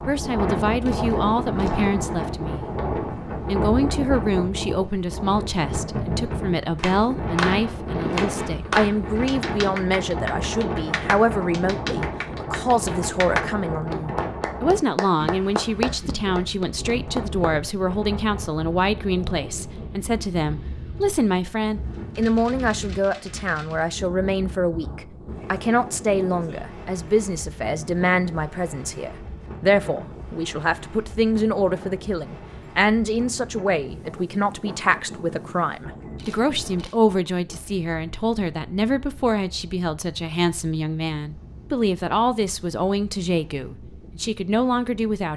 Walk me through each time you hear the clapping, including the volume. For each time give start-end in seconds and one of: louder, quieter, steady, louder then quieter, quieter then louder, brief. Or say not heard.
6.8-17.6 quieter then louder.